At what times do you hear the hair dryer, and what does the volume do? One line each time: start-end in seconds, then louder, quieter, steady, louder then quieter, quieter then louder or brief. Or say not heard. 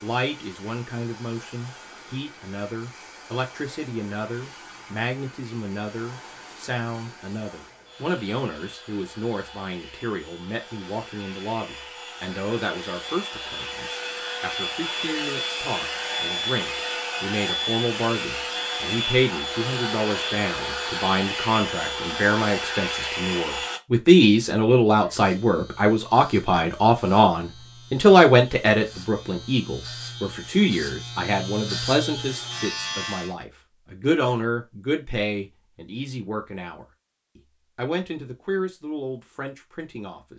0.0-23.8 louder.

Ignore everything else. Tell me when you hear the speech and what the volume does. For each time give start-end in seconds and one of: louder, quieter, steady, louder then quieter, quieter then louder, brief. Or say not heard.
0.0-40.3 louder then quieter.